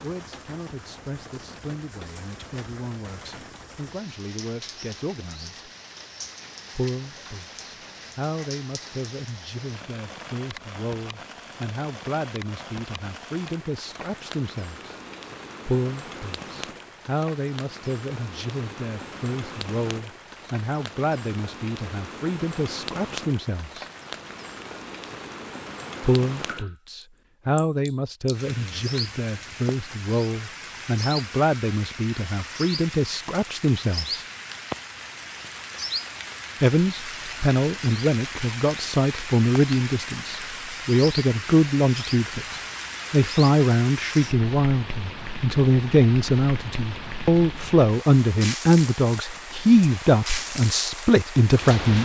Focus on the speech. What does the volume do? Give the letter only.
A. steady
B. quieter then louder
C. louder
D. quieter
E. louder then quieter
C.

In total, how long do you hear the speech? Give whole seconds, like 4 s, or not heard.
46 s.